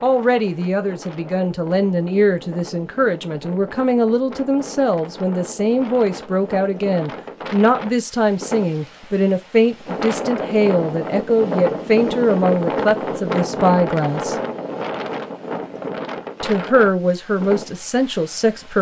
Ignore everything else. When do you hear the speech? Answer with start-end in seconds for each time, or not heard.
0.0-14.3, 16.4-18.7.